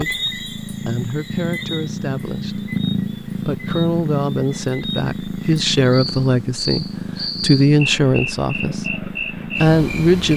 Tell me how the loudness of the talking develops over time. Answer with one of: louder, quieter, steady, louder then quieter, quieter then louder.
louder.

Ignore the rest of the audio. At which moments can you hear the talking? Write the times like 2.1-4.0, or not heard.
0.0-10.3.